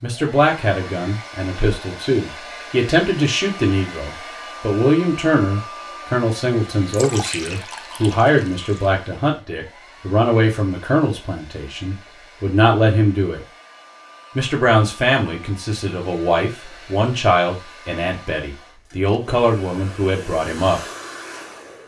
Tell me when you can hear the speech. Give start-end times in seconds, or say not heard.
0.0-13.4, 14.3-20.8.